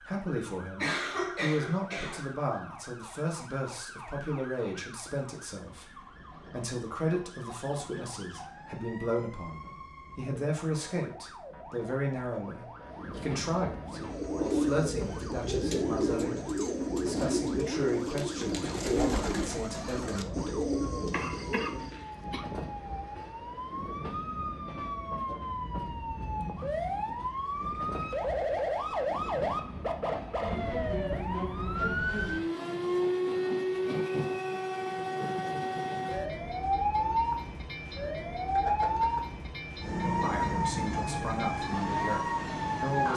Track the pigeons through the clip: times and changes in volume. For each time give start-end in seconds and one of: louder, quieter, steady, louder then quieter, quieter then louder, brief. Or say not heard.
13.8-22.1 steady.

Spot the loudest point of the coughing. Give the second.
1 s.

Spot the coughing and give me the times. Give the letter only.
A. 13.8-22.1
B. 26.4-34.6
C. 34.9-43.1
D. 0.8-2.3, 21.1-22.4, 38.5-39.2
D.